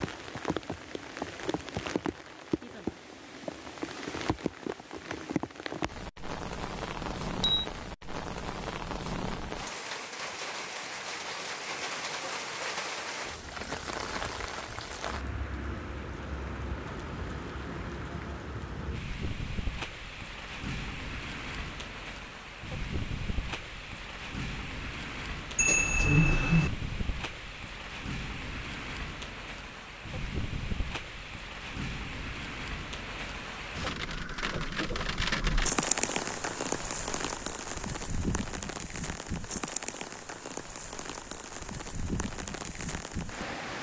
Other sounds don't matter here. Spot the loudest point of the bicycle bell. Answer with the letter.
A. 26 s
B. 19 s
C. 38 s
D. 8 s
A.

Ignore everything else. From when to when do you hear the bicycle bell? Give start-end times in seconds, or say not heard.
7.0-7.7, 25.6-26.7.